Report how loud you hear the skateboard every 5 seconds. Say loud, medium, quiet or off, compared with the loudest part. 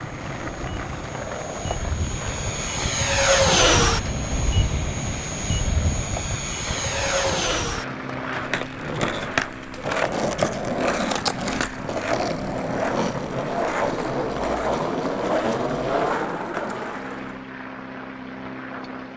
medium, medium, loud, loud.